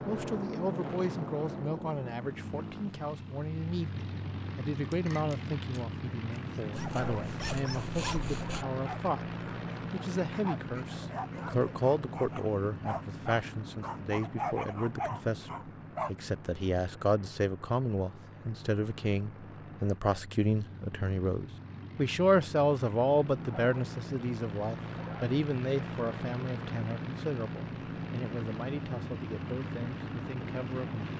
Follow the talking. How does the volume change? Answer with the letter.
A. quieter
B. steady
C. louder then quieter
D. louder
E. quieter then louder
C.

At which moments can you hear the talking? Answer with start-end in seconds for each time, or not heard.
0.1-31.1.